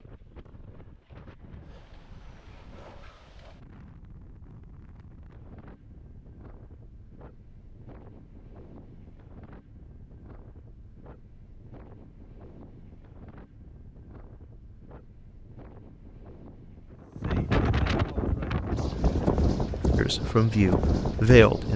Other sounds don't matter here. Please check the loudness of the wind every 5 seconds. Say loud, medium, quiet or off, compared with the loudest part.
quiet, quiet, quiet, loud, loud.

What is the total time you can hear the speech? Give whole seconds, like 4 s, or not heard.
2 s.